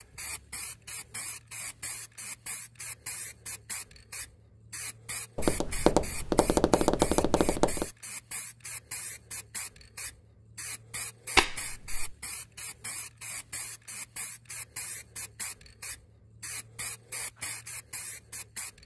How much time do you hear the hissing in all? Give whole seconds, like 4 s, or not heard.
19 s.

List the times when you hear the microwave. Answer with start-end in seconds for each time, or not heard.
not heard.